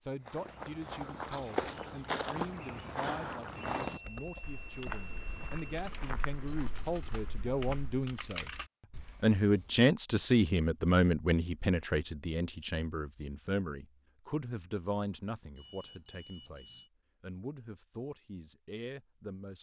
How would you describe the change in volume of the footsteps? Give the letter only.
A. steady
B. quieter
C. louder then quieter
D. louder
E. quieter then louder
B.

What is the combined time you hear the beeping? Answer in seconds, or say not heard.
4 s.